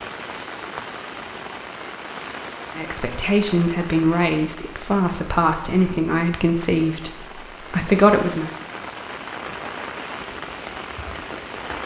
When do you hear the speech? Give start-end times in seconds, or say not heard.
2.8-8.5.